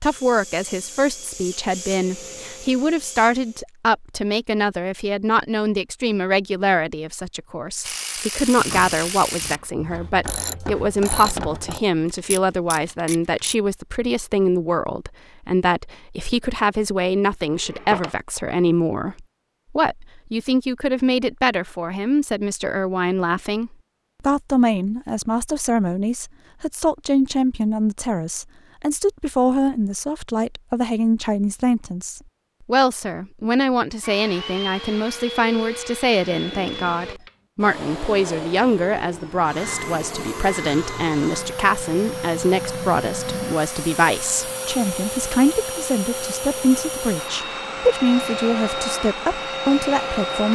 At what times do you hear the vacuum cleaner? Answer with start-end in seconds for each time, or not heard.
0.0-3.6, 34.0-50.5.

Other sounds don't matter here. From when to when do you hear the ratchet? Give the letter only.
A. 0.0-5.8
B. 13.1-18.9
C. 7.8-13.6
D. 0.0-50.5
C.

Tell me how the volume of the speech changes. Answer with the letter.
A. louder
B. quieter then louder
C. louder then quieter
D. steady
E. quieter
D.